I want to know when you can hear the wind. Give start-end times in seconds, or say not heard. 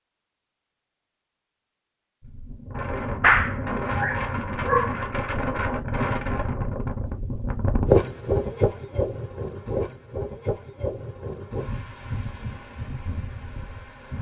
2.2-14.1.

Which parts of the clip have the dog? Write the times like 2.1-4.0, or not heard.
3.0-5.0.